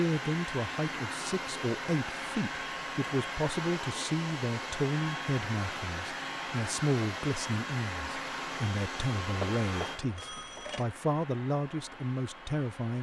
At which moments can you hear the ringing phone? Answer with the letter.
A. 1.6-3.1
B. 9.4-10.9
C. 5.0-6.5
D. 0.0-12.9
B.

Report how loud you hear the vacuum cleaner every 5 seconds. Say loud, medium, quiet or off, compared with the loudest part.
loud, loud, medium.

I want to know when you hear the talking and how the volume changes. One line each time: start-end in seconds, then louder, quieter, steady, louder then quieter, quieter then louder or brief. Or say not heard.
0.0-12.9 steady.